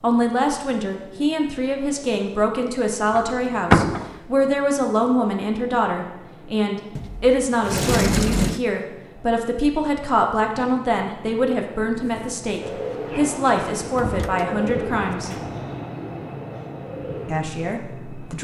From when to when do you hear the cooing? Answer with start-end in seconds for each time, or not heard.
12.1-17.5.